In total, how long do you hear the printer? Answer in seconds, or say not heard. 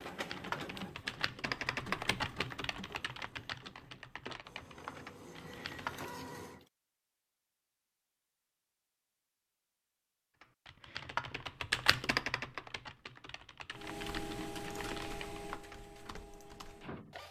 10 s.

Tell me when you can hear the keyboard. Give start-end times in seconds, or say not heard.
0.0-6.1, 10.4-15.8.